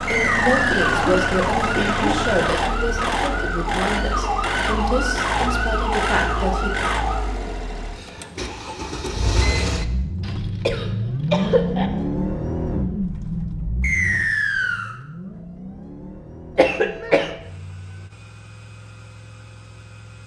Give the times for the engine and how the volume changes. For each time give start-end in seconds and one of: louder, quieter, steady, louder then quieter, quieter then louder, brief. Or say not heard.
0.0-20.2 quieter.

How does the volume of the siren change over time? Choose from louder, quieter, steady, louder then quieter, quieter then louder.
steady.